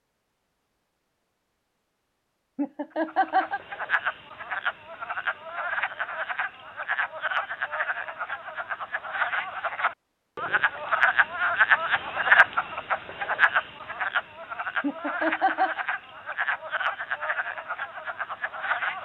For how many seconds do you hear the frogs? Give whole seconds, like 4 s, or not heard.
16 s.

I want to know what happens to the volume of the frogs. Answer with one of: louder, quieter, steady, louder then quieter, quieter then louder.
louder then quieter.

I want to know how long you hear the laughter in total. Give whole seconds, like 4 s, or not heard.
2 s.